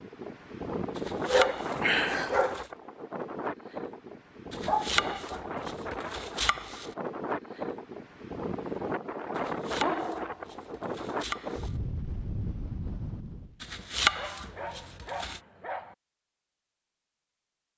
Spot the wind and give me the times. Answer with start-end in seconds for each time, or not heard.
0.0-13.6.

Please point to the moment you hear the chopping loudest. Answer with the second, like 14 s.
14 s.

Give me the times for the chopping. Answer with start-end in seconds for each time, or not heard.
0.9-2.6, 4.5-7.0, 9.3-11.8, 13.6-15.4.